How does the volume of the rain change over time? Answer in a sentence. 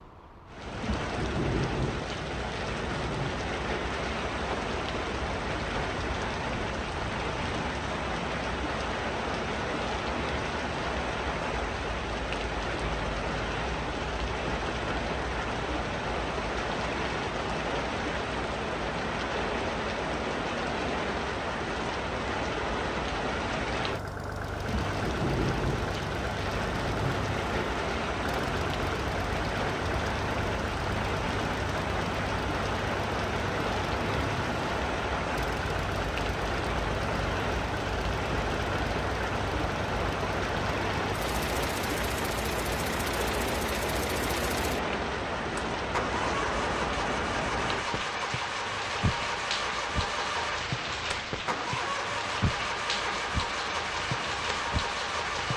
The loudness of the rain stays about the same.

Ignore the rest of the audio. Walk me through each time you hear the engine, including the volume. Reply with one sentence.
The engine can be heard from 23.9 to 55.5 s, at a steady volume.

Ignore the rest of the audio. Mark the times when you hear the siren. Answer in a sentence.
The siren can't be heard in this clip.